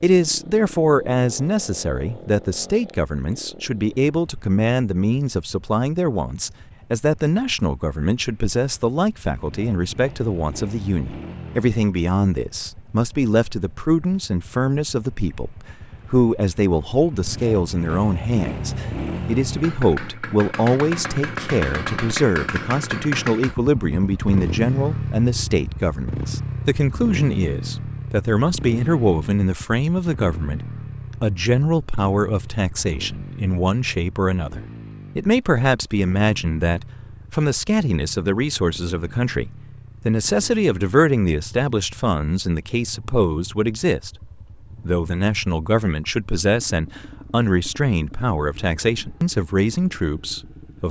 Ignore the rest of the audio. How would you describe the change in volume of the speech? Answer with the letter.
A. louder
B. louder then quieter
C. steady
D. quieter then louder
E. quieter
C.